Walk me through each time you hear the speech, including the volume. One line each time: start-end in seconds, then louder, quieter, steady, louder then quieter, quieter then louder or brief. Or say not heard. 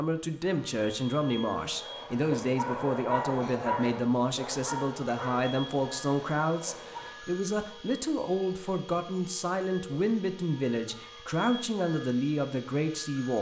0.0-13.3 steady.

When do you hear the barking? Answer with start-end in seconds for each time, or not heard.
1.6-7.2.